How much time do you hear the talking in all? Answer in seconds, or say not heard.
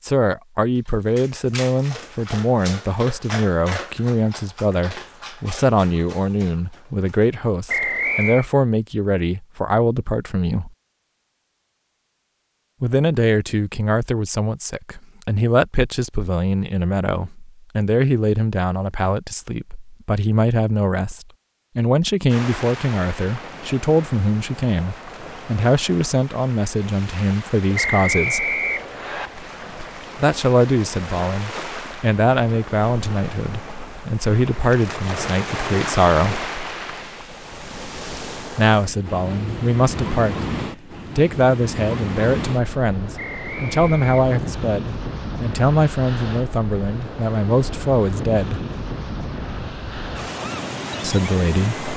43 s.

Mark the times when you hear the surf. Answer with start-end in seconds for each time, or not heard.
22.2-51.9.